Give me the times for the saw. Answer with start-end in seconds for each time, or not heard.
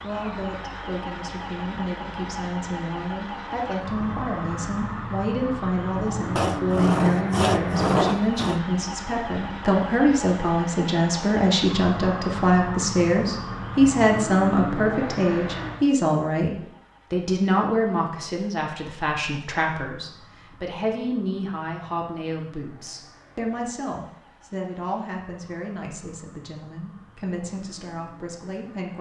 6.3-8.6.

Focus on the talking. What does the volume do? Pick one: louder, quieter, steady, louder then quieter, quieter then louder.
louder then quieter.